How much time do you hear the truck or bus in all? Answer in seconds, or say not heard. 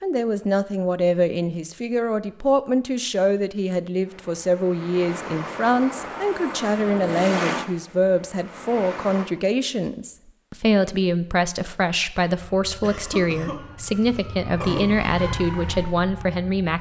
5 s.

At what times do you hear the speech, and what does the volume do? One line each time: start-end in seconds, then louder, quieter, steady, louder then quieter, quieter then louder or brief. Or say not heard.
0.0-16.7 steady.